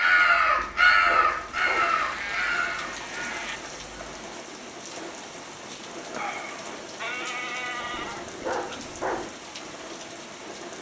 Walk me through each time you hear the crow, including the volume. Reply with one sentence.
You can hear the crow from 0.0 to 4.2 s, getting quieter.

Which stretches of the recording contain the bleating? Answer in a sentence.
You can hear the bleating from 1.8 to 3.6 s and from 7.0 to 8.8 s.